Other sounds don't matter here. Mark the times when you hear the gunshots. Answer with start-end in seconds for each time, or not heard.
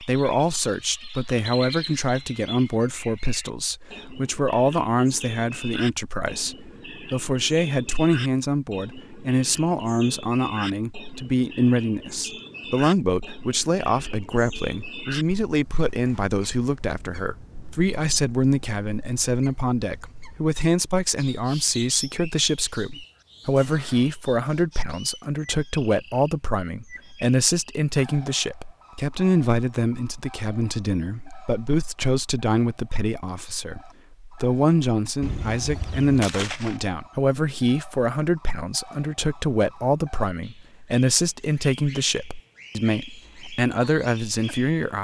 35.2-36.8.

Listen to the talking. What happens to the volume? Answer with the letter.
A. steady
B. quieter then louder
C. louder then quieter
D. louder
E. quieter
A.